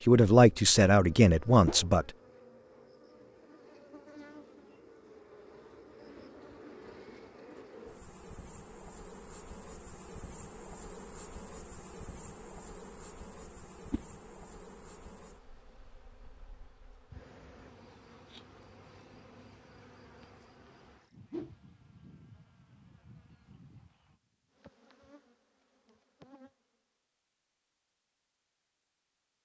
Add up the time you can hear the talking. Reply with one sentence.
You can hear the talking for 2 seconds altogether.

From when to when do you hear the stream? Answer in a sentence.
The stream can't be heard in this clip.